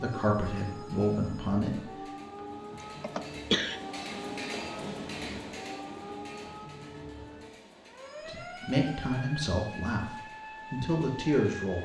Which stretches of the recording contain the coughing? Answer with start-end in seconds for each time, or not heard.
2.7-3.8.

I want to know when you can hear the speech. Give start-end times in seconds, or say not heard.
0.0-1.9, 8.2-11.7.